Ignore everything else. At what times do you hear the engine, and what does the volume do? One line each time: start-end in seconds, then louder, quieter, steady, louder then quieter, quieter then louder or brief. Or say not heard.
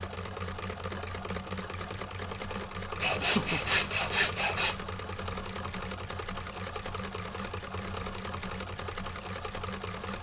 0.0-10.1 steady.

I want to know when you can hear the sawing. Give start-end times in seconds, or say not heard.
3.0-4.8.